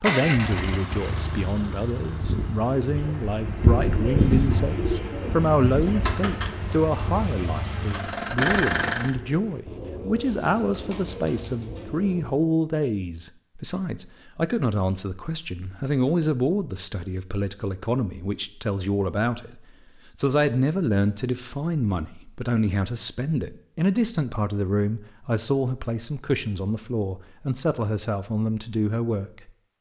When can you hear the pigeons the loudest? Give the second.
4 s.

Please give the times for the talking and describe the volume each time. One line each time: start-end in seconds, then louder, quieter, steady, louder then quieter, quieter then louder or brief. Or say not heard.
0.0-29.5 steady.